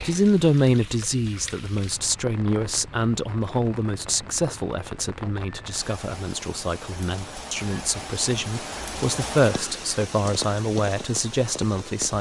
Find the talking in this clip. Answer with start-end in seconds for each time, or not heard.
0.0-12.1.